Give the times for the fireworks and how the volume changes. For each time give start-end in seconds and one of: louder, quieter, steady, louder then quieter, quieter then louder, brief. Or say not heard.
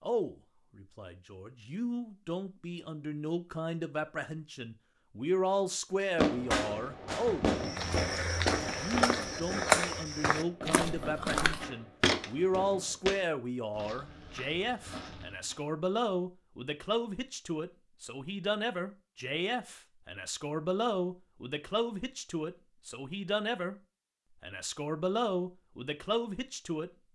6.2-12.9 quieter.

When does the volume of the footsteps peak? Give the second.
10 s.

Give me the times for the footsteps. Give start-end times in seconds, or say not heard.
7.5-15.7.